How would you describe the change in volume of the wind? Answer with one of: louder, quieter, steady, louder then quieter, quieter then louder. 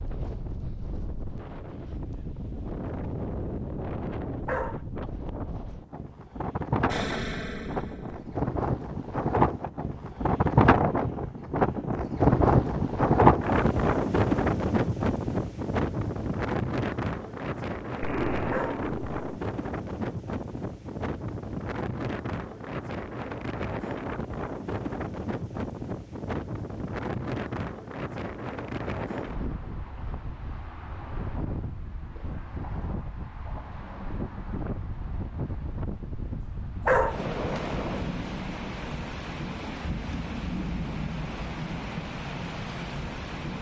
louder then quieter.